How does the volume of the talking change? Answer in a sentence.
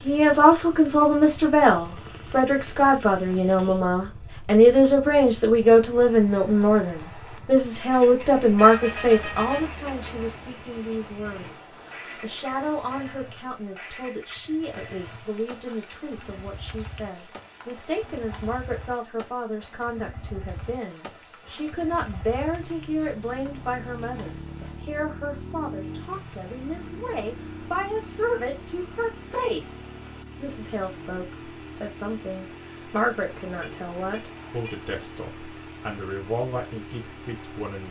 The volume of the talking goes down.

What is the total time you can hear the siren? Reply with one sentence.
The siren can't be heard in this clip.